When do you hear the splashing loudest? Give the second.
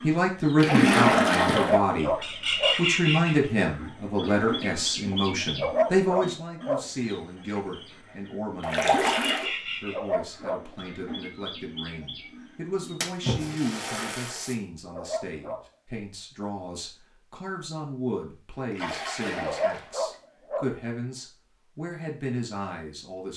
1 s.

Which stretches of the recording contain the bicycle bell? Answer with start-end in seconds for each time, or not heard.
not heard.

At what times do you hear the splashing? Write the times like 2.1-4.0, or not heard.
0.6-1.8, 8.6-9.5, 13.0-14.6, 18.7-19.9.